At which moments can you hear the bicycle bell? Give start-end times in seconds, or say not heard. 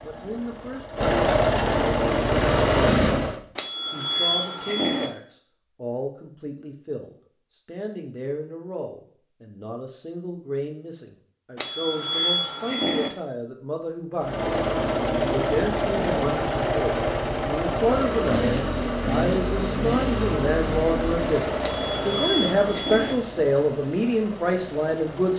3.5-5.1, 11.6-13.1, 21.6-23.1.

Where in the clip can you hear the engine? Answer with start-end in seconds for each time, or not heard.
0.0-3.4, 14.2-25.3.